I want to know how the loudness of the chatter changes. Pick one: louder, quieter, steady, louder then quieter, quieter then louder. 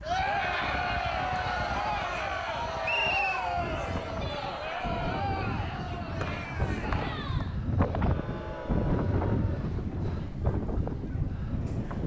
quieter.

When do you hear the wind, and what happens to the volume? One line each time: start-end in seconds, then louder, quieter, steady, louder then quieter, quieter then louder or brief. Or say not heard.
0.0-12.0 louder.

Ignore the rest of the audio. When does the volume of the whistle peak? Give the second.
3 s.